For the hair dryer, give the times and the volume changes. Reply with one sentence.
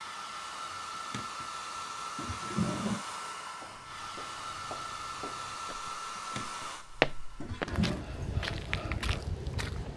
The hair dryer can be heard from 0.0 to 9.9 s, getting quieter.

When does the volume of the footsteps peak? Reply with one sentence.
The volume of the footsteps peaks at 7 seconds.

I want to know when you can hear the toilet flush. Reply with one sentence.
The toilet flush can be heard from 1.1 to 3.0 s and from 6.2 to 8.1 s.